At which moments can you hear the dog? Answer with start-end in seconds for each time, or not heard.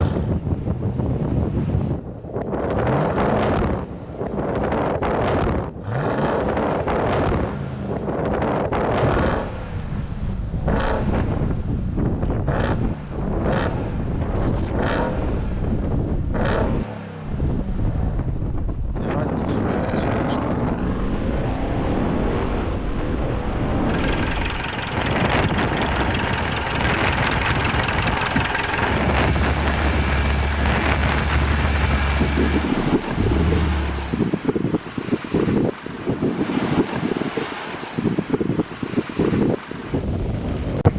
not heard.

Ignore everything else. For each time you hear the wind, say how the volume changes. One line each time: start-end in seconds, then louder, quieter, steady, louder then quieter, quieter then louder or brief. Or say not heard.
0.0-40.9 steady.